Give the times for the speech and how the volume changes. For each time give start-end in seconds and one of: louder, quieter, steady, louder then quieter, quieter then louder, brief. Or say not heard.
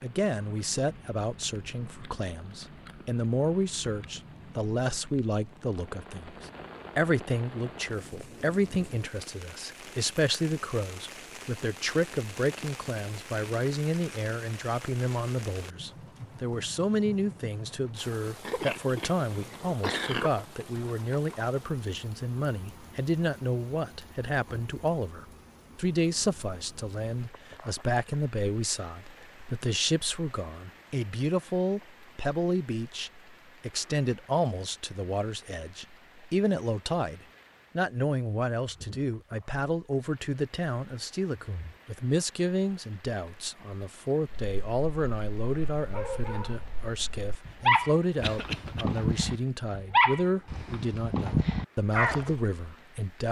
0.0-53.2 steady.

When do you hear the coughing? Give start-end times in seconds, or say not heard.
18.4-20.4, 48.2-48.9.